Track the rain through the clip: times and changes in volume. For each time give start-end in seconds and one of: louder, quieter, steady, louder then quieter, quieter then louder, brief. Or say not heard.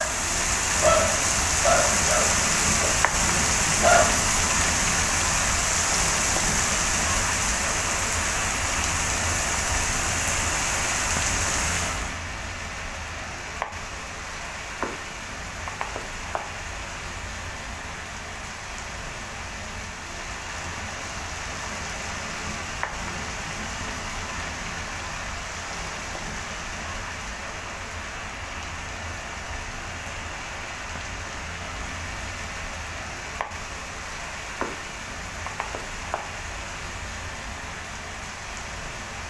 0.0-39.2 quieter.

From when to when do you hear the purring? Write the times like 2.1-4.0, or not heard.
not heard.